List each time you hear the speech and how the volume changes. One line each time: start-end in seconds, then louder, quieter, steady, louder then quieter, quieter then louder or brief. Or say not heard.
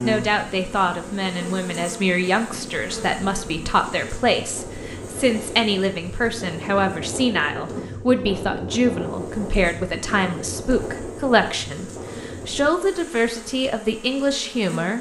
0.0-14.9 steady.